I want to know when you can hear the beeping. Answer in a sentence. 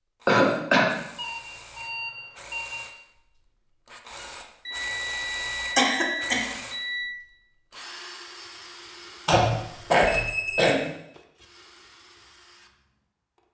You can hear the beeping from 1.1 to 2.9 s, from 4.7 to 7.2 s and from 9.3 to 10.8 s.